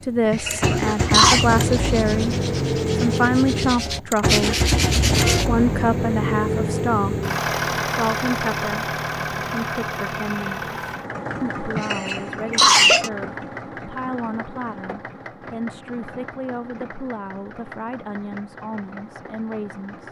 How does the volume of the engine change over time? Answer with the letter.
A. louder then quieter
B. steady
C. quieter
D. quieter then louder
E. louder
C.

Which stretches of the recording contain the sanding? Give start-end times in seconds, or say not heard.
0.3-5.5.